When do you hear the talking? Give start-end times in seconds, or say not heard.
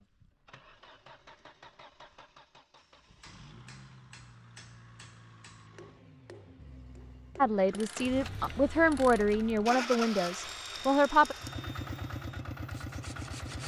7.3-11.3.